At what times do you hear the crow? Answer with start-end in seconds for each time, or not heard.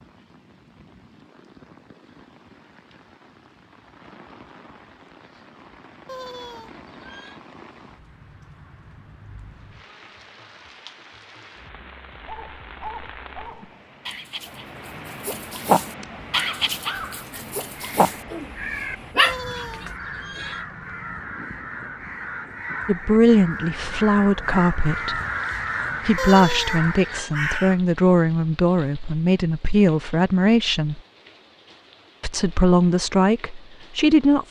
16.3-27.8.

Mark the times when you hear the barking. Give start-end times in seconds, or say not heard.
12.2-20.4.